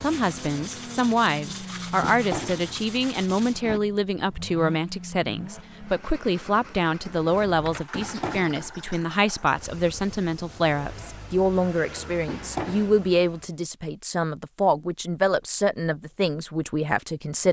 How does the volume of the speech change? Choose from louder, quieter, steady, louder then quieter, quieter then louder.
steady.